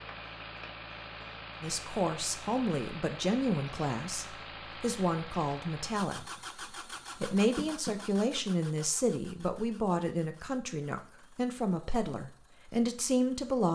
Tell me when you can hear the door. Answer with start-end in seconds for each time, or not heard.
0.1-0.7, 7.3-8.0.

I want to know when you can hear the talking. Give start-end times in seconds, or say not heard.
1.6-6.2, 7.2-13.6.